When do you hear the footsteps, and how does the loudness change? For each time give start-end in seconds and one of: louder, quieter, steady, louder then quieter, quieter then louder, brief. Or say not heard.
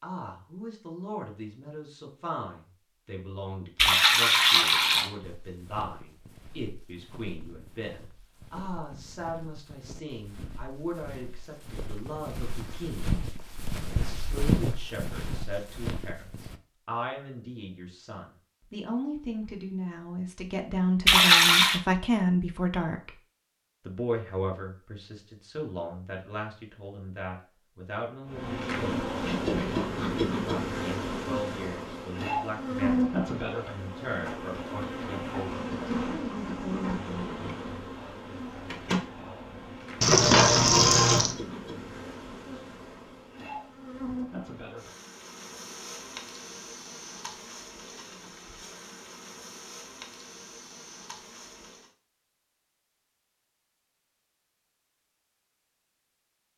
5.2-16.6 louder.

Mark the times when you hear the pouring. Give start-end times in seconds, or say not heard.
3.8-5.1, 21.1-21.8, 40.0-41.4.